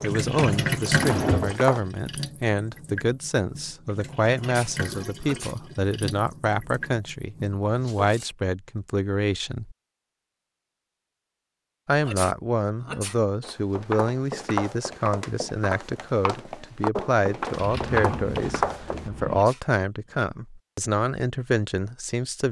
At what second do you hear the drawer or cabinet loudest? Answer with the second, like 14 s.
1 s.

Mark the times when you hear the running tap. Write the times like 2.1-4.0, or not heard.
0.0-8.3.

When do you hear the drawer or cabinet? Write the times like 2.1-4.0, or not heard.
0.3-1.6, 17.6-19.4.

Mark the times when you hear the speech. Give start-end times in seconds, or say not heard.
0.0-9.8, 11.8-22.4.